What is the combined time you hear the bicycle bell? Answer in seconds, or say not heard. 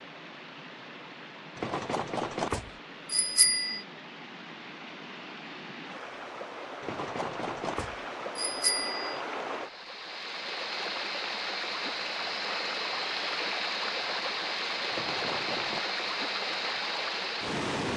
6 s.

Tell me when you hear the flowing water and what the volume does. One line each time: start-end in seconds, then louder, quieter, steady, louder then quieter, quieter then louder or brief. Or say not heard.
0.0-17.9 louder.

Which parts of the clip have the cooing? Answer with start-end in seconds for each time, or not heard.
not heard.